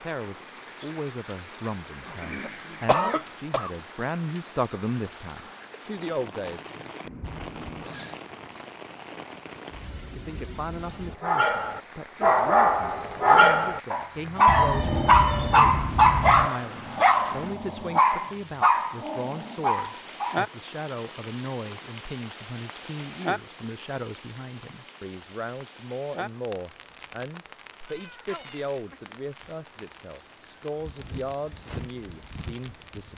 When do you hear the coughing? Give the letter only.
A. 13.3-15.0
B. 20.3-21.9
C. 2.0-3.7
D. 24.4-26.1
C.